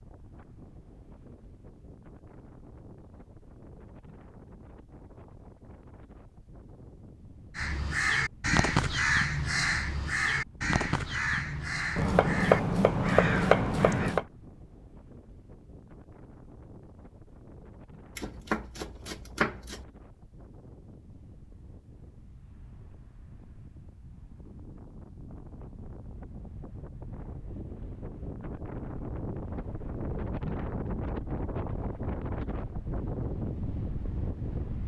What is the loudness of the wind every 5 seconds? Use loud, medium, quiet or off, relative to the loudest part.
quiet, quiet, quiet, quiet, quiet, medium, loud.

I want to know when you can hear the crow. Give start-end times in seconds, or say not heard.
7.5-14.2.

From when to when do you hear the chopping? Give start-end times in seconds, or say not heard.
11.9-14.2, 18.1-19.9.